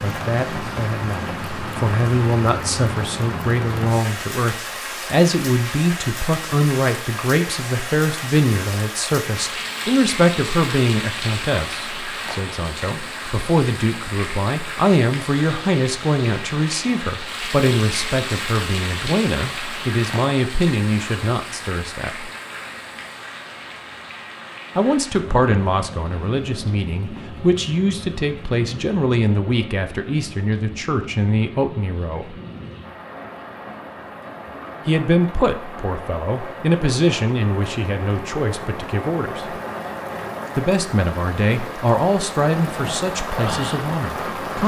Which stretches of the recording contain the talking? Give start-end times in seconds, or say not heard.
0.0-22.3, 24.8-32.4, 34.9-39.5, 40.5-44.6.